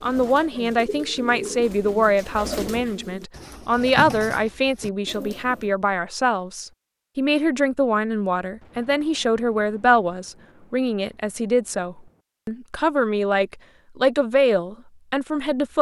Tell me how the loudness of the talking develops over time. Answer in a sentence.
The loudness of the talking stays about the same.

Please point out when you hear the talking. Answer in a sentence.
You can hear the talking from 0.0 to 15.7 s.